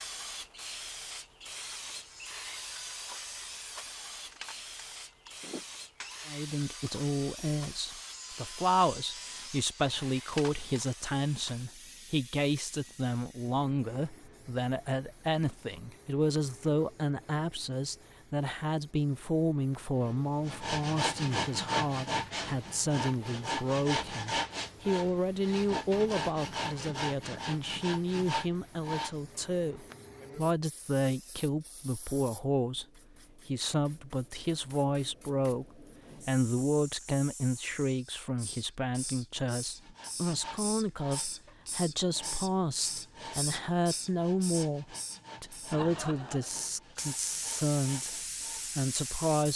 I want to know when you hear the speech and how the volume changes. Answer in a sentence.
The speech can be heard from 6.2 to 32.9 s, at a steady volume; from 33.5 to 48.1 s, at a steady volume; and briefly from 48.8 to 49.5 s.